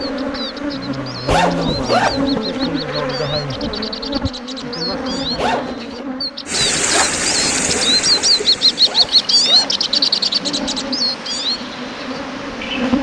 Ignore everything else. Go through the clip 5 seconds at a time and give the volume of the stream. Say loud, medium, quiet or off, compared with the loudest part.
off, loud, medium.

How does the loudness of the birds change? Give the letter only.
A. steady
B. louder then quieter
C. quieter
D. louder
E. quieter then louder
B.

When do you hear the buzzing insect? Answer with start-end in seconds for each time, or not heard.
0.0-12.9.